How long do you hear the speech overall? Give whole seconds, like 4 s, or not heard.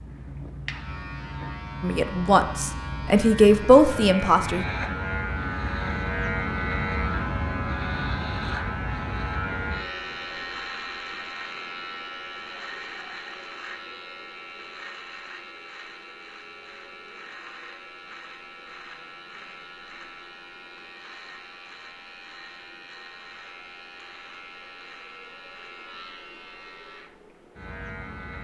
3 s.